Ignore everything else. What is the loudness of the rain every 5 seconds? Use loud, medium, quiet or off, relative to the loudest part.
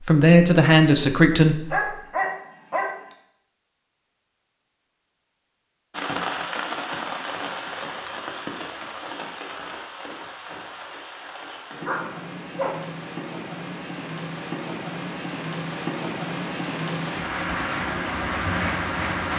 off, loud, medium, loud.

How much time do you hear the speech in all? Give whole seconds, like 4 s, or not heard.
2 s.